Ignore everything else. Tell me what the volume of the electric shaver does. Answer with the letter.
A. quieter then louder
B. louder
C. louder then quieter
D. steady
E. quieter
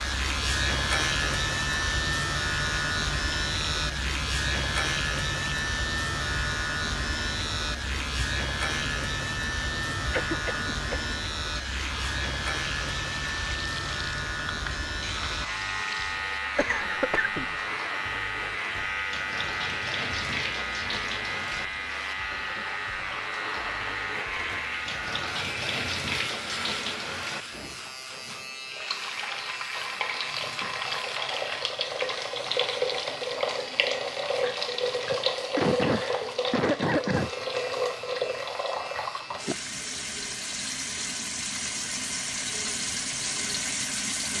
E.